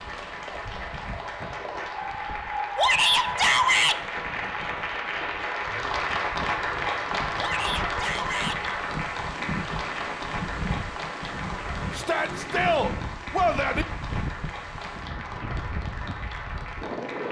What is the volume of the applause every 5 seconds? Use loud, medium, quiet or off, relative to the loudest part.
loud, loud, medium, medium.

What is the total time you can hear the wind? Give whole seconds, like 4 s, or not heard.
17 s.